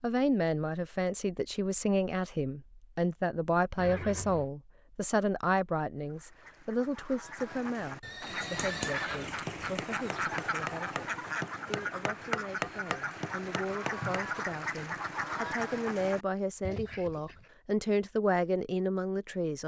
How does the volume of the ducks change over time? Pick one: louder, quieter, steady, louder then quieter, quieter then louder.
louder.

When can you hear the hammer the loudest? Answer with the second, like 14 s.
12 s.